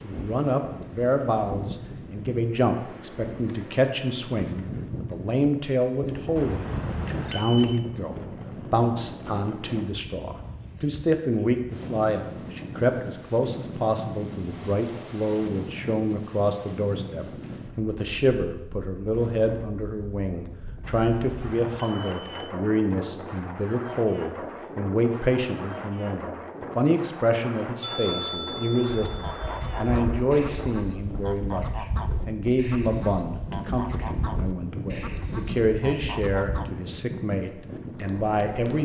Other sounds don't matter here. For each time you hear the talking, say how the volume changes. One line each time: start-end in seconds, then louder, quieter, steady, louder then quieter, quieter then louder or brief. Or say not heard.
0.0-38.7 steady.